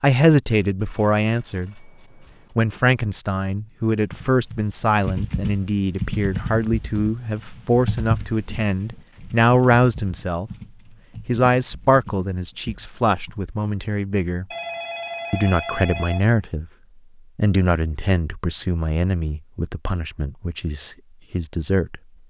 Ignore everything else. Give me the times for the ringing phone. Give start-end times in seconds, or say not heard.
0.8-2.5, 14.5-16.3.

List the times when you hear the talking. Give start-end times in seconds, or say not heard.
0.0-1.9, 2.5-10.5, 11.2-14.4, 15.3-16.7, 17.4-22.0.